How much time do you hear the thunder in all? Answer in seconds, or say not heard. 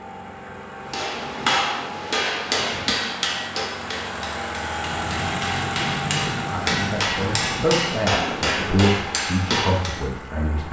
4 s.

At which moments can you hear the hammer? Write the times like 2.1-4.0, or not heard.
0.9-10.1.